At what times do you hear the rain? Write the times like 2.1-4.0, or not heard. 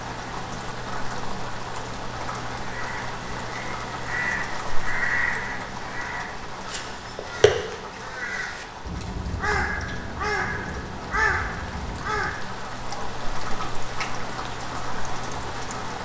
0.0-16.0.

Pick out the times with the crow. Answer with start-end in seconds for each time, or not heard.
2.6-12.3.